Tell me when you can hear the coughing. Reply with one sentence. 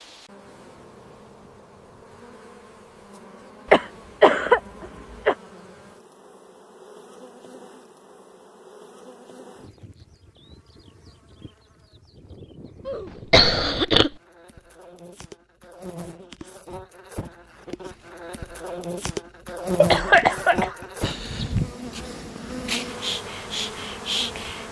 The coughing can be heard from 3.7 to 5.3 s, from 12.8 to 14.2 s and from 19.8 to 21.2 s.